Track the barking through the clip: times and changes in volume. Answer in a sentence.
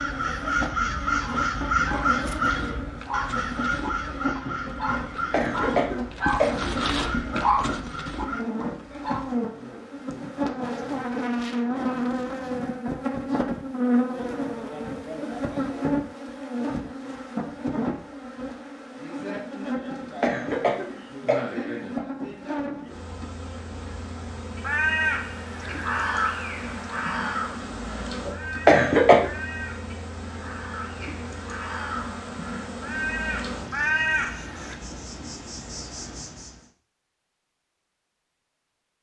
The barking can be heard from 1.2 to 9.3 s, getting louder.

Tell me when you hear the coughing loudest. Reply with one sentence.
The volume of the coughing peaks at 29 seconds.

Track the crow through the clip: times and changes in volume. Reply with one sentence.
You can hear the crow from 0.0 to 8.4 s, getting quieter; and from 24.6 to 34.8 s, getting quieter then louder.